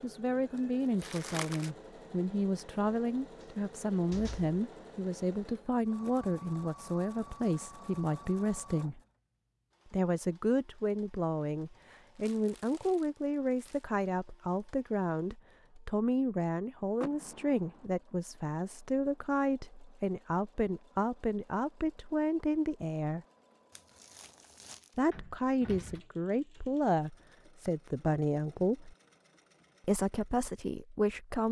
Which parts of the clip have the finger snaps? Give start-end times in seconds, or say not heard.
not heard.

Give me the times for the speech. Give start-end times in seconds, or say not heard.
0.0-9.0, 9.9-23.2, 24.9-28.9, 29.9-31.4.